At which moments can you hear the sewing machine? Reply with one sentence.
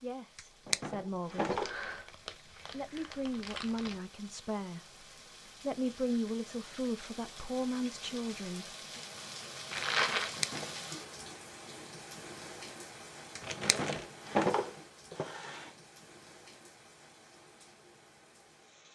The sewing machine can't be heard in this clip.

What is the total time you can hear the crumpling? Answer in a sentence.
The crumpling can be heard for 4 seconds in total.